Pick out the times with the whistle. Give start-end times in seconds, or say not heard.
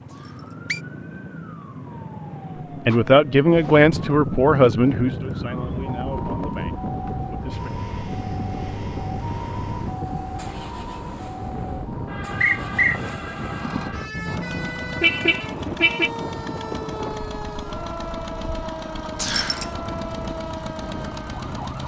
0.2-0.8, 12.4-13.0, 19.2-19.6.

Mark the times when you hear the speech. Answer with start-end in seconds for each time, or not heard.
2.9-7.7.